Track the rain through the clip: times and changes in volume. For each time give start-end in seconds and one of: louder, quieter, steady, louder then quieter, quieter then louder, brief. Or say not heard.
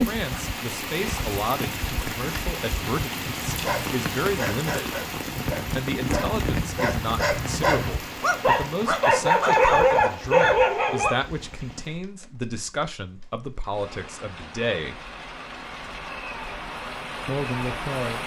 0.0-18.2 quieter then louder.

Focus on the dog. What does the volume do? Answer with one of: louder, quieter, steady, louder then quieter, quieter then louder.
louder.